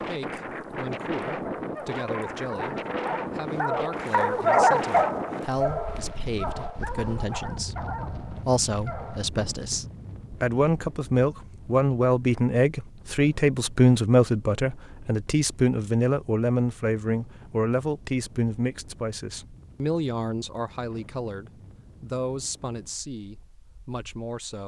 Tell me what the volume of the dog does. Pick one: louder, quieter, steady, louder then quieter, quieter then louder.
louder then quieter.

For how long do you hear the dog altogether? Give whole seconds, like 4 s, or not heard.
8 s.